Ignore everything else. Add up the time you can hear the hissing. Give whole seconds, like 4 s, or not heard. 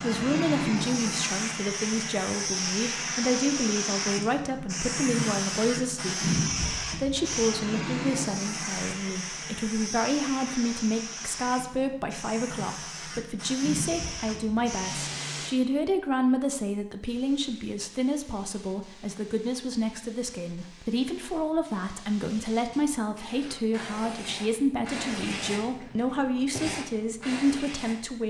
27 s.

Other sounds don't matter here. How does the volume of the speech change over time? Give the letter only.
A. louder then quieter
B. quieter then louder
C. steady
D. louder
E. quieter
C.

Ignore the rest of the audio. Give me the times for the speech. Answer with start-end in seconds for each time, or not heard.
0.0-28.2.